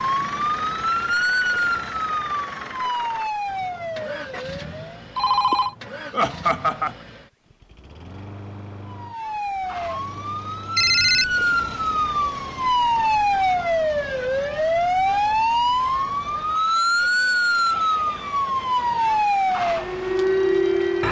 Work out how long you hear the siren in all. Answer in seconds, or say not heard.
17 s.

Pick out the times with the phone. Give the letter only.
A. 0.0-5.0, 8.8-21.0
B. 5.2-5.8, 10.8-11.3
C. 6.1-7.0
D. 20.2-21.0
B.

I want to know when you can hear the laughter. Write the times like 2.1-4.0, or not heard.
6.1-7.0.